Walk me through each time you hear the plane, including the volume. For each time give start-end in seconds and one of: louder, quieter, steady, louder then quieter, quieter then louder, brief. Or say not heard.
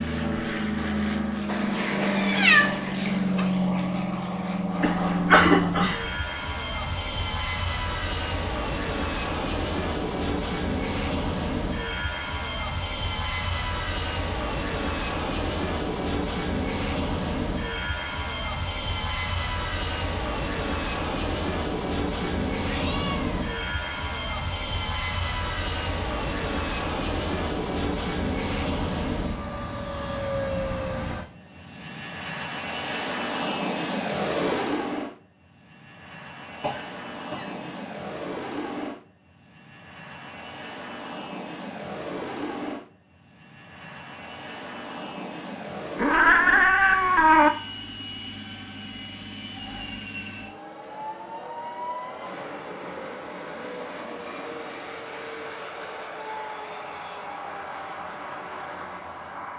0.0-59.5 quieter.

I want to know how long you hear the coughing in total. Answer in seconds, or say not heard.
2 s.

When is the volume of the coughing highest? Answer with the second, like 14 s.
5 s.